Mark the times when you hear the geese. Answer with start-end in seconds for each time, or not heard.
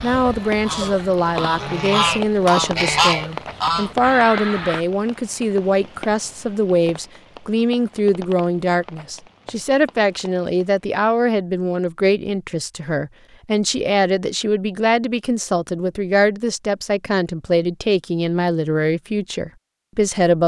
0.0-4.8.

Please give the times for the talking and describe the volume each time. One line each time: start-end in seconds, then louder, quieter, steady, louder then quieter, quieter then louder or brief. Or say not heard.
0.0-20.4 steady.